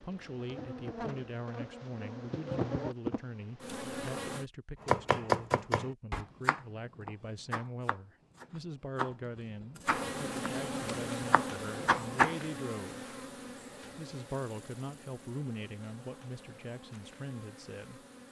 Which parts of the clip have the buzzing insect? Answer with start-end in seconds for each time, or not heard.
0.0-4.5, 9.8-18.2.